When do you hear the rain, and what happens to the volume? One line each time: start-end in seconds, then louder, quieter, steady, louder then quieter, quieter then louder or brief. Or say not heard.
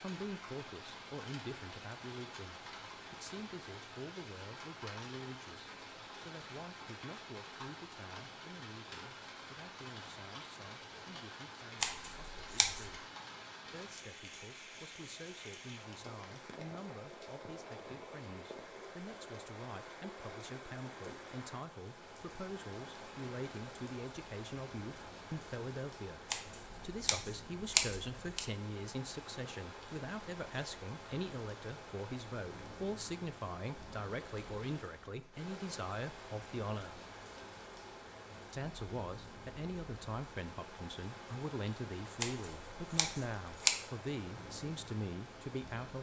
0.0-45.9 steady.